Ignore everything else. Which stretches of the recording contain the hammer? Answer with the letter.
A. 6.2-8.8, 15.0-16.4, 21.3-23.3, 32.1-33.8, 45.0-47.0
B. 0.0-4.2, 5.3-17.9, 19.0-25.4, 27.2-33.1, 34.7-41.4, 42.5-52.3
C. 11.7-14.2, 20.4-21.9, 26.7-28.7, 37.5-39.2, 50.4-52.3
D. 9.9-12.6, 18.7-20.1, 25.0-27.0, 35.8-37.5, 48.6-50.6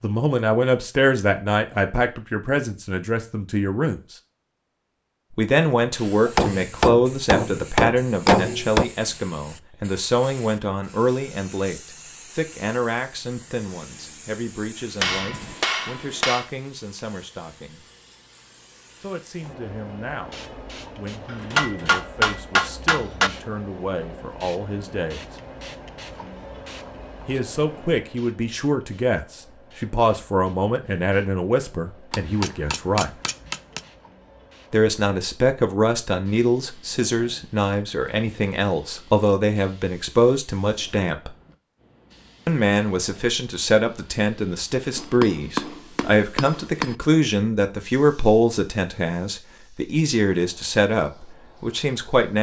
A.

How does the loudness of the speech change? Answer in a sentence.
The volume of the speech goes down, then up.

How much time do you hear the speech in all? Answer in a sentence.
You can hear the speech for 45 seconds altogether.